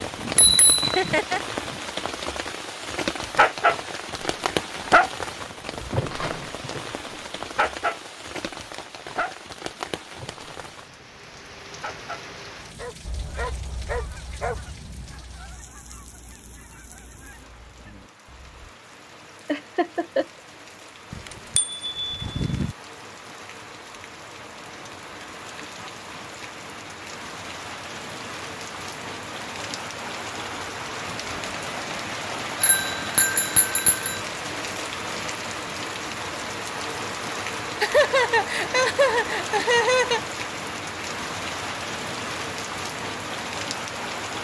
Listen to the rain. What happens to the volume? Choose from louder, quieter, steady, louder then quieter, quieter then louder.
quieter then louder.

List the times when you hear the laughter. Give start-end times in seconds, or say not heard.
0.8-1.4, 19.4-20.2, 37.8-40.2.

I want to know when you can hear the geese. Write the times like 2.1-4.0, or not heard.
13.0-18.8.